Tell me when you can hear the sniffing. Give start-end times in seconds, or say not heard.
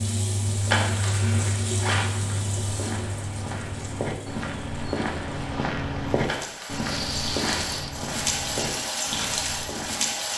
6.8-8.0.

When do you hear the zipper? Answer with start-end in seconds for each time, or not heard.
0.6-2.1, 6.2-7.7.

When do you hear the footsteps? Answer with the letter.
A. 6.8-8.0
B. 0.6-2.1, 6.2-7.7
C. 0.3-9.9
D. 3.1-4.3
C.